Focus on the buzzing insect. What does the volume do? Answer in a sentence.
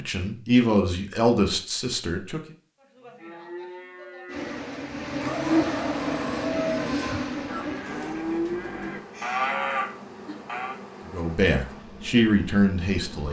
The loudness of the buzzing insect goes down.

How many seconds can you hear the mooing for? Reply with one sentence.
The mooing can be heard for 8 seconds in total.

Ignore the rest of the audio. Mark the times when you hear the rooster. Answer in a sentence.
The rooster can be heard from 5.2 to 8.2 s.